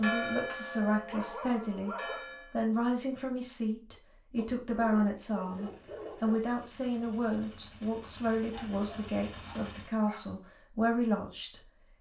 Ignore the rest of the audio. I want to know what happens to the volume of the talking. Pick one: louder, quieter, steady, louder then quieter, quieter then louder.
steady.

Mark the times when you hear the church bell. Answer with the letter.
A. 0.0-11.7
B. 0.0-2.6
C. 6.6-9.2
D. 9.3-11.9
B.